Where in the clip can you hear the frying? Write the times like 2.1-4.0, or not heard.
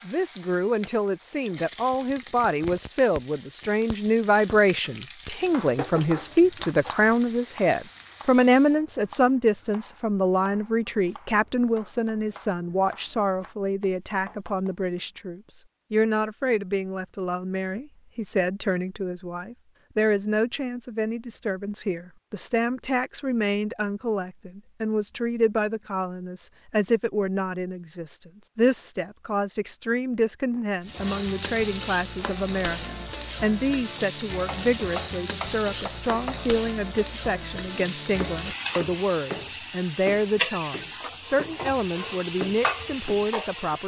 0.0-8.8, 30.8-43.8.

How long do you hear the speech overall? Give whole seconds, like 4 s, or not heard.
44 s.